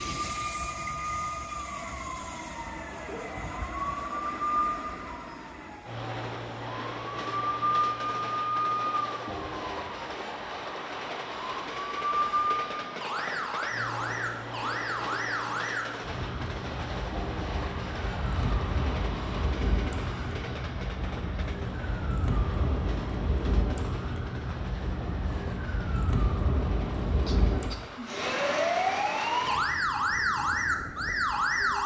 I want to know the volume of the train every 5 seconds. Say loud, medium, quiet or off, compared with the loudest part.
loud, loud, loud, loud, medium, medium, medium.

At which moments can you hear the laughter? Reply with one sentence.
You can hear the laughter from 2.9 to 3.4 s and from 27.2 to 28.2 s.